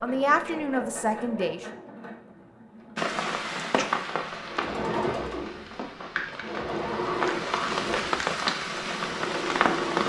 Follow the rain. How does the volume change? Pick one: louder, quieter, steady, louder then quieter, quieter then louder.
quieter then louder.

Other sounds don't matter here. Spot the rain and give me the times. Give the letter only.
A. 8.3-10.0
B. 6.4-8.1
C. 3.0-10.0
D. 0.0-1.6
C.